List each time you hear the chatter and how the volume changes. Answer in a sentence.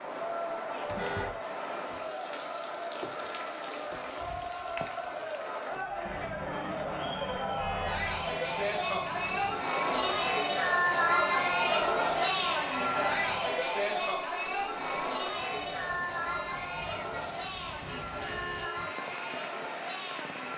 The chatter can be heard from 0.0 to 20.5 s, getting louder then quieter.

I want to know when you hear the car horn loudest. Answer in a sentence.
The volume of the car horn peaks at 1 second.